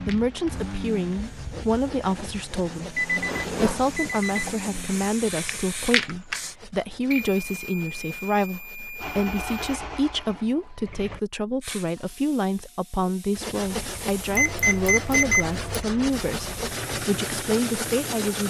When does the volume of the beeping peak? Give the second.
15 s.